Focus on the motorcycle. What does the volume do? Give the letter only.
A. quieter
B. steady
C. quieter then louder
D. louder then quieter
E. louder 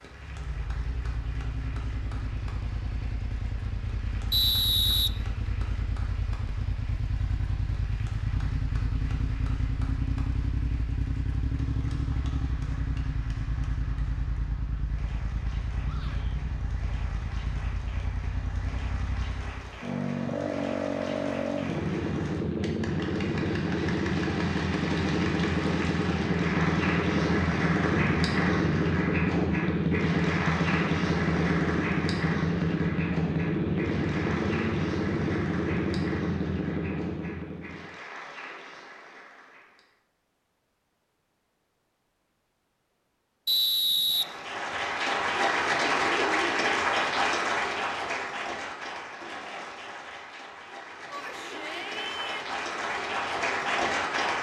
E.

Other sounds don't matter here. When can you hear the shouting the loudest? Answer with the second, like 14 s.
52 s.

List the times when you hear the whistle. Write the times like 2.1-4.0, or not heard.
4.3-5.1, 43.5-44.8.